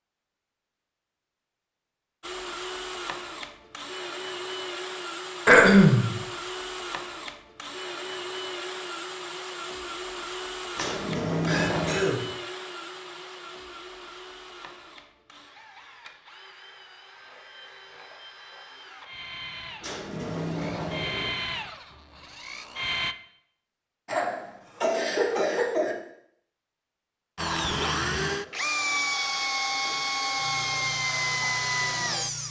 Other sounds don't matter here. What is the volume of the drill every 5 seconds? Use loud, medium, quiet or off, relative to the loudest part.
medium, medium, medium, quiet, medium, loud, loud.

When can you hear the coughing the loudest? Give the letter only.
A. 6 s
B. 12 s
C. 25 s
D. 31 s
A.